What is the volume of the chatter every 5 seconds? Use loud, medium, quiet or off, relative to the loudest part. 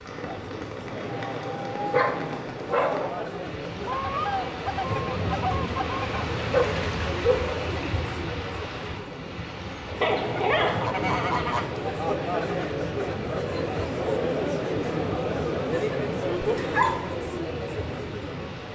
medium, medium, loud, loud.